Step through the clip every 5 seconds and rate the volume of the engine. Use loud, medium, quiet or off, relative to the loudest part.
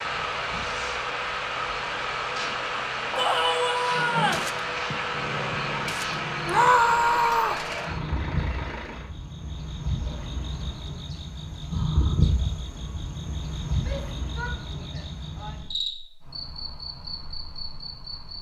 loud, loud, off, off.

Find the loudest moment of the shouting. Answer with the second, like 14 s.
7 s.